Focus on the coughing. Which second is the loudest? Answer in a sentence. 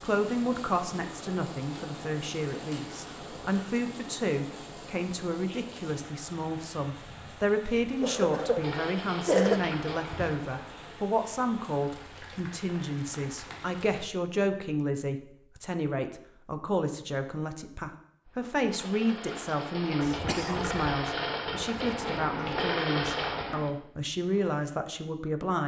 The volume of the coughing peaks at 9 seconds.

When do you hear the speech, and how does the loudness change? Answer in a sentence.
You can hear the speech from 0.0 to 25.6 s, at a steady volume.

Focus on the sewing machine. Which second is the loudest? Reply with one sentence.
The loudest moment of the sewing machine is at 23 seconds.